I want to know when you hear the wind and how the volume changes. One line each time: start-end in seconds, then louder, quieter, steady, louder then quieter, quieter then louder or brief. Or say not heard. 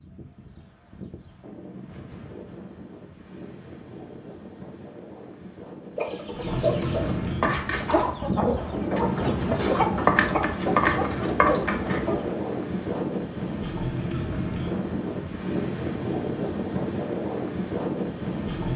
0.0-18.7 louder.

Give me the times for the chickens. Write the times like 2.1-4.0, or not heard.
6.0-12.3.